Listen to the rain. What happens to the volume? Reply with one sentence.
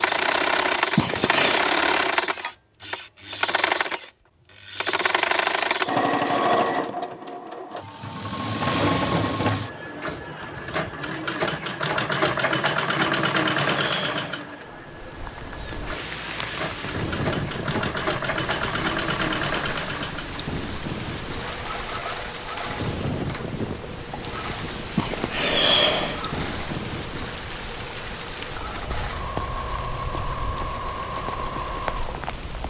The loudness of the rain stays about the same.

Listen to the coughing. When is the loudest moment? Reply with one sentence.
The loudest moment of the coughing is at 26 seconds.